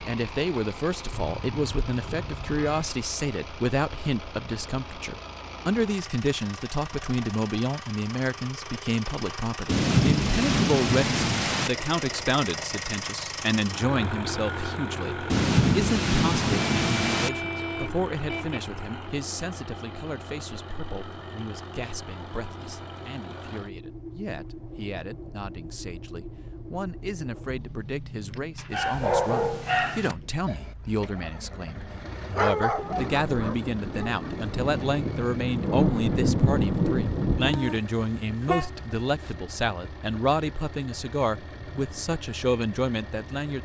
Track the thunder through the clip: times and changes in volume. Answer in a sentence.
You can hear the thunder briefly from 9.7 to 11.7 s; briefly from 15.3 to 17.3 s; and from 32.8 to 37.6 s, getting louder.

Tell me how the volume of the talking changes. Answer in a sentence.
The loudness of the talking goes down, then up.